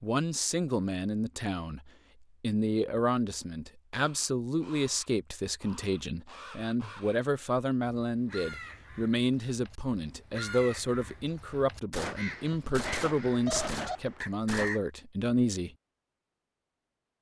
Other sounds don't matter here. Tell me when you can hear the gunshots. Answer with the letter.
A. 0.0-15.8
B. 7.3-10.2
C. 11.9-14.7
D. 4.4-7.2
C.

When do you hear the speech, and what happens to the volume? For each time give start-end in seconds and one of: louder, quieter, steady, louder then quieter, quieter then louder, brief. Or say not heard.
0.0-15.8 steady.